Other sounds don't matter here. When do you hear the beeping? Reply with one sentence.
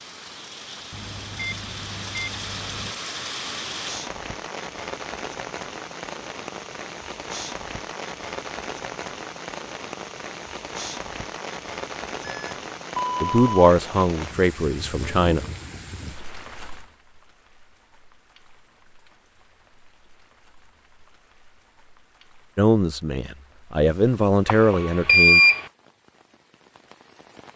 You can hear the beeping from 0.9 to 3.0 s, from 12.2 to 13.5 s and from 24.4 to 25.6 s.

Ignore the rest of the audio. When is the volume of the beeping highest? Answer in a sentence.
The loudest moment of the beeping is at 25 seconds.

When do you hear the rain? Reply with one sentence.
You can hear the rain from 0.0 to 27.5 s.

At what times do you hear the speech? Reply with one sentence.
The speech can be heard from 13.2 to 15.4 s and from 22.6 to 25.4 s.